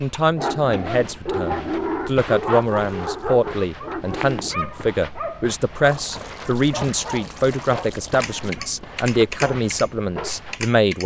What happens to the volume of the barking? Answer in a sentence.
The volume of the barking goes down.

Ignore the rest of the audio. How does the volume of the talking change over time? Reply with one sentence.
The loudness of the talking stays about the same.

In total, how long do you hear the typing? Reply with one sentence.
The typing can be heard for 3 seconds in total.